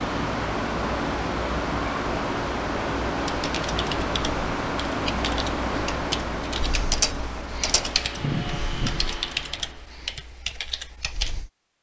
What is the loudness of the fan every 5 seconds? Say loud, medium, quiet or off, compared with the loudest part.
loud, loud, off.